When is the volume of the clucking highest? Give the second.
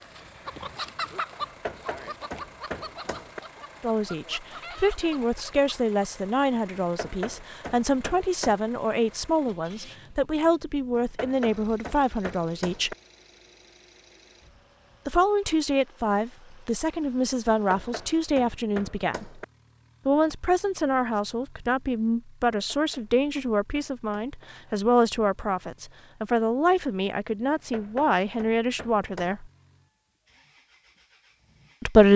1 s.